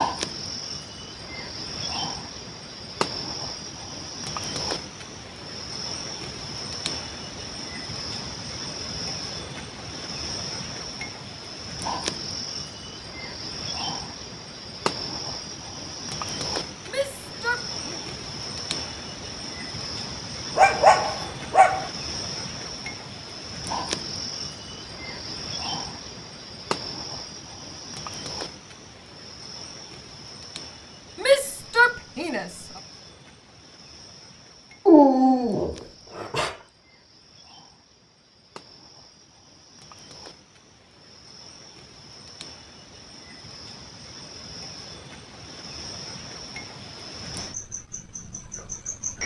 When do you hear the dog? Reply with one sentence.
You can hear the dog from 20.6 to 21.9 s and from 34.9 to 36.5 s.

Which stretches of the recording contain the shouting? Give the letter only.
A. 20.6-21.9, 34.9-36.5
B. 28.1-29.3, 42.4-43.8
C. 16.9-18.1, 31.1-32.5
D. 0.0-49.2
C.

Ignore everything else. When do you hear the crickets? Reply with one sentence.
You can hear the crickets from 0.0 to 49.2 s.